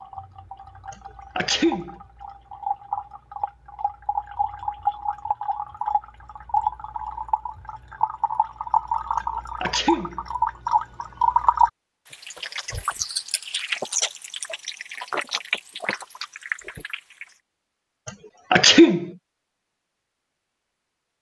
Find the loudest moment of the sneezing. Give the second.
19 s.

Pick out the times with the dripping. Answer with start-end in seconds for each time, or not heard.
0.0-17.4.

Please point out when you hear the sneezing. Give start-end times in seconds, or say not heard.
0.9-1.9, 9.2-10.2, 18.1-19.1.